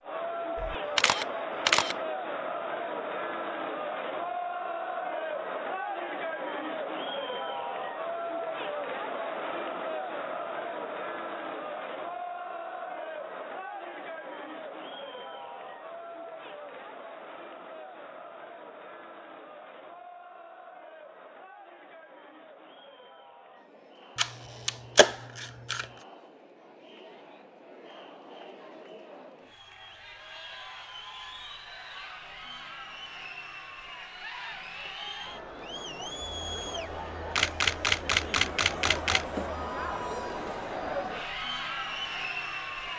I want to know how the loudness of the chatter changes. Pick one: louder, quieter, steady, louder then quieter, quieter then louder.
quieter then louder.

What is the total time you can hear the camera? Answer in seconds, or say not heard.
5 s.